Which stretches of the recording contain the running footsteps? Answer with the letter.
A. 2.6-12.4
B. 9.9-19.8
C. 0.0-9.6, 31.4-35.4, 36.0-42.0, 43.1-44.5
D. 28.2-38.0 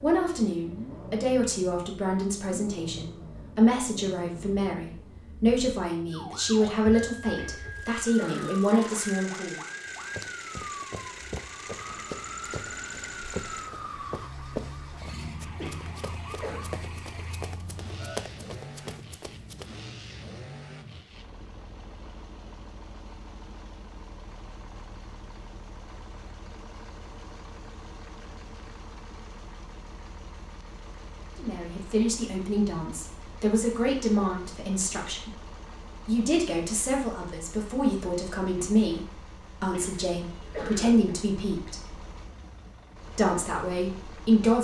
B.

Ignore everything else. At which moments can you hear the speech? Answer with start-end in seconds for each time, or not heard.
0.0-9.6, 31.4-35.4, 36.0-42.0, 43.1-44.5.